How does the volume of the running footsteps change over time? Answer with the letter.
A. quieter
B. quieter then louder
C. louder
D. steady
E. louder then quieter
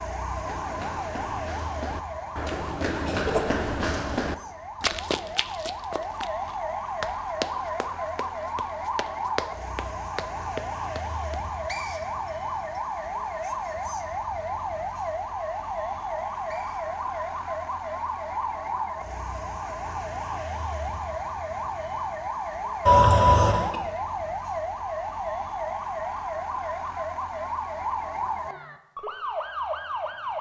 E.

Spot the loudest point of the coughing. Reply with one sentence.
The volume of the coughing peaks at 23 seconds.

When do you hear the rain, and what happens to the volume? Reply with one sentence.
The rain can't be heard in this clip.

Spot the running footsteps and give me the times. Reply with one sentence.
You can hear the running footsteps from 0.2 to 11.4 s.